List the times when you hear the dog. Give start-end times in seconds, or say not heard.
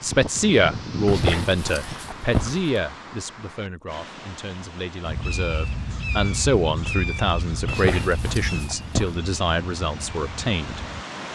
1.1-2.6, 7.7-9.2.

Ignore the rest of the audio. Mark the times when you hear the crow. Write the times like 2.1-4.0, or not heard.
0.0-2.1, 5.0-11.1.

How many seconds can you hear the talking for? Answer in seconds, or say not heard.
11 s.